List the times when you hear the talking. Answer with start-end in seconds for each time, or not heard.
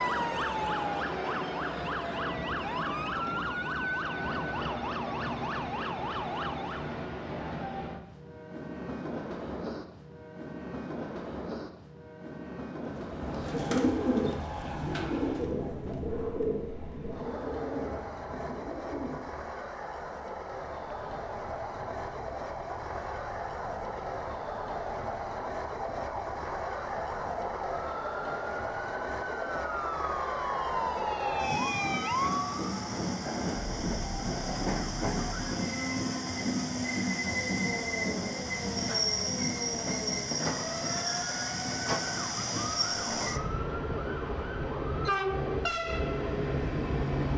not heard.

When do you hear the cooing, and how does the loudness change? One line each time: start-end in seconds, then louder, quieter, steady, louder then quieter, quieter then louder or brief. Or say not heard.
12.8-19.6 quieter.